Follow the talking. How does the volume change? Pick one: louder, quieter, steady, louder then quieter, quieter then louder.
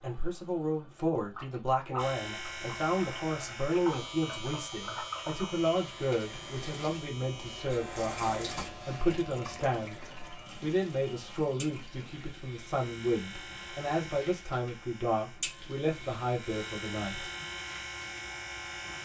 steady.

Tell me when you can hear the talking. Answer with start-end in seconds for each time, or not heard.
0.0-17.3.